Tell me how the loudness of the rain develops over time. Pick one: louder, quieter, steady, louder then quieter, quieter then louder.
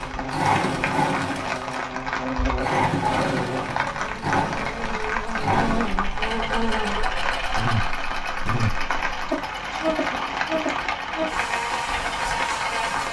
steady.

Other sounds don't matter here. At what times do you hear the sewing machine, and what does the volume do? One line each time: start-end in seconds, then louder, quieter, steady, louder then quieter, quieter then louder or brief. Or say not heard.
0.0-12.8 quieter.